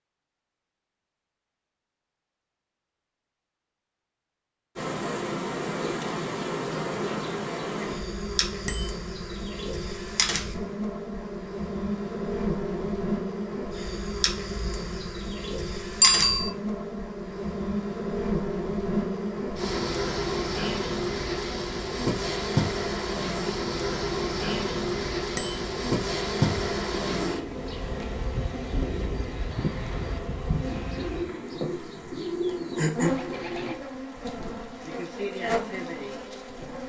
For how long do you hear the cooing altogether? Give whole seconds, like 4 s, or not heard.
7 s.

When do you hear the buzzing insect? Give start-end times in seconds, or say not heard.
4.8-36.8.